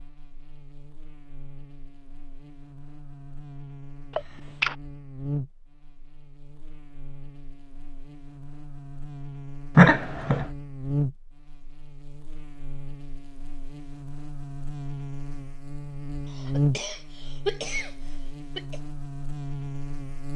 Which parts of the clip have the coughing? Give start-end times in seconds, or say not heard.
4.2-4.8, 9.8-10.5, 16.2-18.8.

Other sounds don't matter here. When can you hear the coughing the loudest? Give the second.
10 s.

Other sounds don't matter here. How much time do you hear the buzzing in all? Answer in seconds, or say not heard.
20 s.